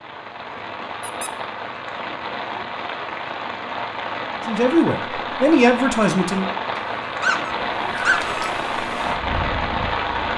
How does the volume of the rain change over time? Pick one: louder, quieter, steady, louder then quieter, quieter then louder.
louder.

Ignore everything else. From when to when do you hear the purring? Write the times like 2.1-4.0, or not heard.
7.8-10.3.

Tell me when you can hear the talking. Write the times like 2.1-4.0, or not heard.
4.5-6.5.